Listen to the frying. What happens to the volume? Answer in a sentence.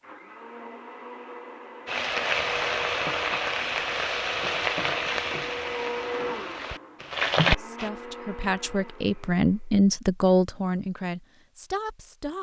The volume of the frying goes down, then up.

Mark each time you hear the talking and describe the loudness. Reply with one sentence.
You can hear the talking from 7.4 to 12.3 s, getting louder then quieter.